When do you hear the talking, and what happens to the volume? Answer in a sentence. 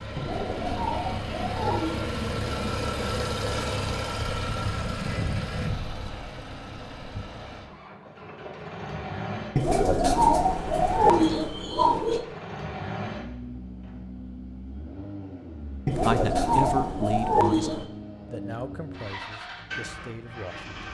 You can hear the talking from 15.9 to 20.7 s, getting quieter.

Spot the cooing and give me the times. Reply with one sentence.
You can hear the cooing from 0.1 to 2.1 s, from 9.6 to 12.2 s and from 15.8 to 17.9 s.